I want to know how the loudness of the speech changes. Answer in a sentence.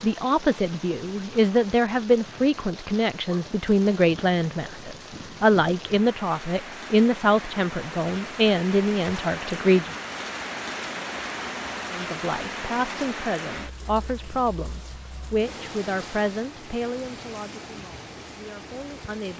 The loudness of the speech goes down.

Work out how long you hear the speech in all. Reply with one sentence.
The speech can be heard for 17 seconds in total.